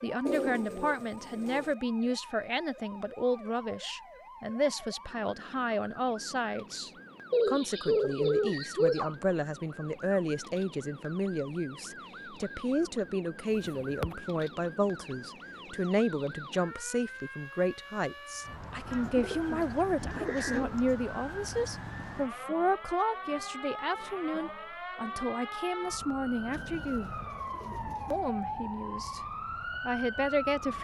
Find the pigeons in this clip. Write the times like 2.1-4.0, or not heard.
0.2-1.7, 7.3-9.2, 13.6-14.2, 18.9-20.8, 26.5-28.2.